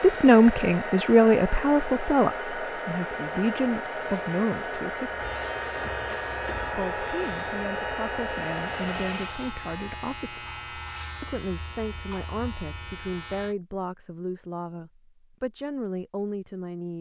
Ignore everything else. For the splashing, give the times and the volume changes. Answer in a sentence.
You can't hear the splashing here.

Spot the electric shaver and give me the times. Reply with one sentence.
The electric shaver can be heard from 3.1 to 13.6 s.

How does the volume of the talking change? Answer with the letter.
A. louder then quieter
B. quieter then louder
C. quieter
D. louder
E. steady
C.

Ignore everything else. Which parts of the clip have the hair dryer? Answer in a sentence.
The hair dryer can be heard from 0.0 to 9.4 s.